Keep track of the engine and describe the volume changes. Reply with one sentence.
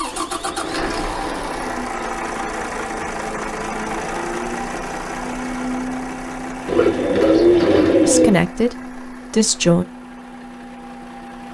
The loudness of the engine goes down.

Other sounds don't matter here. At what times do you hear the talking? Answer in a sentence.
The talking can be heard from 8.1 to 9.8 s.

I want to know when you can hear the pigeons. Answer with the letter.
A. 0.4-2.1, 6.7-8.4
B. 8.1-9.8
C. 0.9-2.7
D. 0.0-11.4
A.